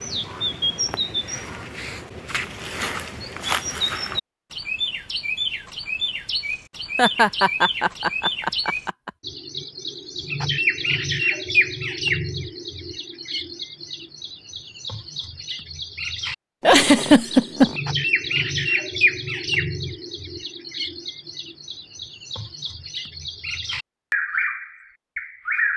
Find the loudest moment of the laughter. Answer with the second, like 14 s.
17 s.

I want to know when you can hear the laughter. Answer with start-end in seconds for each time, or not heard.
7.0-9.1, 16.6-17.8.